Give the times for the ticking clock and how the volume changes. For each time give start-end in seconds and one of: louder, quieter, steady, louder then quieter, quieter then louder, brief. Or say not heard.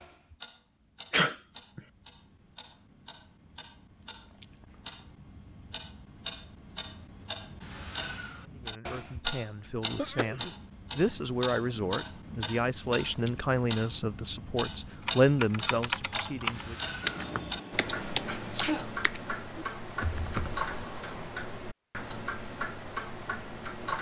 0.0-23.9 louder.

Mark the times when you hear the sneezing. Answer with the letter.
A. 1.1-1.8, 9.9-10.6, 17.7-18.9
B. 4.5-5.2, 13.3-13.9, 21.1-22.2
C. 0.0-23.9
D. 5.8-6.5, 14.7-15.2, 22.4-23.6
A.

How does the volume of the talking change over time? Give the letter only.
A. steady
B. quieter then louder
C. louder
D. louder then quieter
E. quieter
C.